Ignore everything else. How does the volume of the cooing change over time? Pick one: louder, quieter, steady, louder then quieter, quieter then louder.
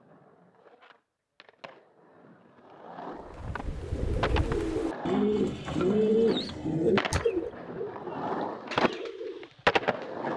louder then quieter.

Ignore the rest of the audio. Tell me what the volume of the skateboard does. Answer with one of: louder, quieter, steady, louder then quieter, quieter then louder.
louder.